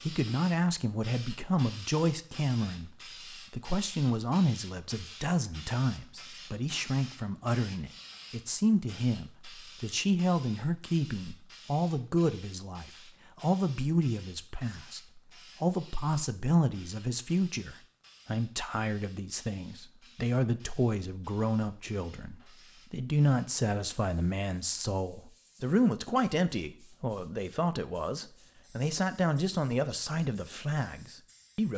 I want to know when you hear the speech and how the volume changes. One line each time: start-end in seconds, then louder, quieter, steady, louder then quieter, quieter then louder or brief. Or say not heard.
0.0-31.7 steady.